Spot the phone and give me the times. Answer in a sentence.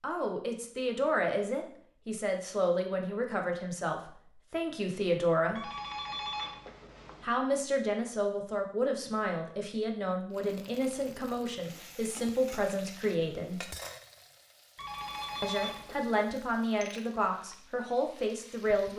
The phone can be heard from 5.5 to 7.4 s and from 14.8 to 16.1 s.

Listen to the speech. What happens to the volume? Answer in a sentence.
The volume of the speech stays about the same.